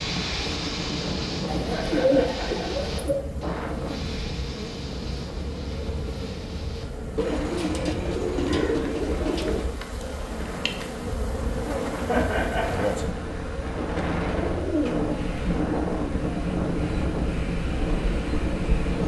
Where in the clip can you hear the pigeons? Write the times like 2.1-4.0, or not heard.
1.4-3.2, 7.2-9.7, 13.8-15.3.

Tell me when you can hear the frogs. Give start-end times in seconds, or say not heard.
not heard.